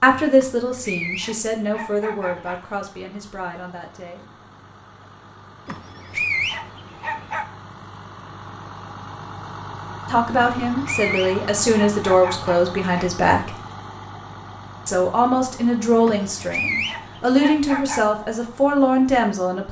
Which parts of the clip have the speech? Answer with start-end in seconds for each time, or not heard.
0.0-4.3, 10.1-13.6, 14.8-19.6.